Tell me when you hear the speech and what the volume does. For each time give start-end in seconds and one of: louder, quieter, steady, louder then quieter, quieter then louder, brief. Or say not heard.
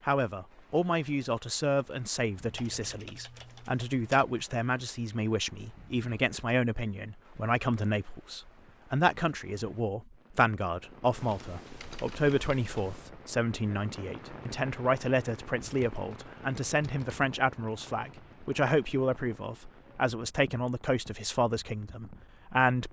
0.1-22.8 steady.